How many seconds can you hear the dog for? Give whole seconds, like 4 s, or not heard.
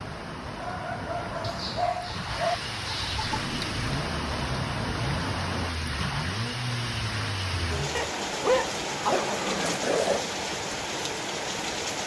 4 s.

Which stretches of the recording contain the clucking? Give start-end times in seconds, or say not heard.
1.4-3.5.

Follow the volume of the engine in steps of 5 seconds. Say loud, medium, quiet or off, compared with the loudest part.
loud, loud, off.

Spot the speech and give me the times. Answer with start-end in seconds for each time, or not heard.
not heard.